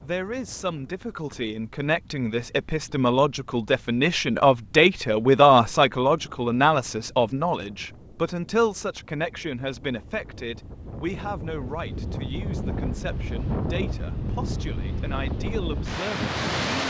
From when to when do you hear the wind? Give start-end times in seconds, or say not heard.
0.0-16.8.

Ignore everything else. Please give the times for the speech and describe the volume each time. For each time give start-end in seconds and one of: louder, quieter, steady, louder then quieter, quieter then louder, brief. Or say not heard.
0.0-16.8 louder then quieter.